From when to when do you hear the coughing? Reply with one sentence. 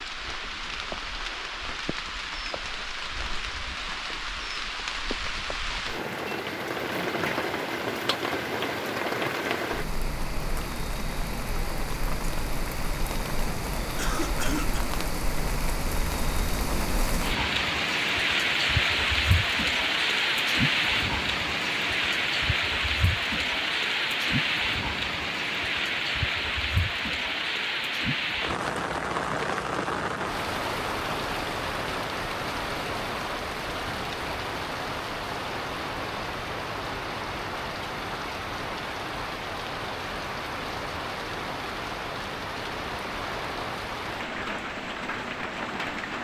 The coughing can be heard from 13.9 to 14.9 s.